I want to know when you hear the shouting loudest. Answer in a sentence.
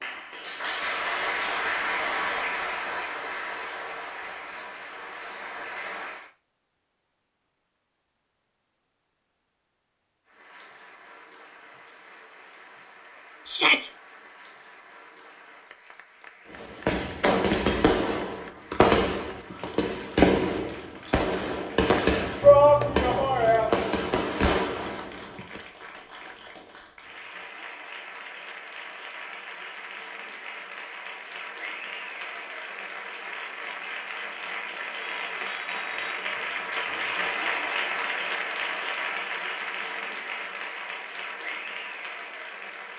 The volume of the shouting peaks at 23 seconds.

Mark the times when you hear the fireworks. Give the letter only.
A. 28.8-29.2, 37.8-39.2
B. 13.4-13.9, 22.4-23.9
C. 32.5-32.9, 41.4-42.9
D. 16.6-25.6
D.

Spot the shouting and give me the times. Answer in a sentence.
You can hear the shouting from 13.4 to 13.9 s and from 22.4 to 23.9 s.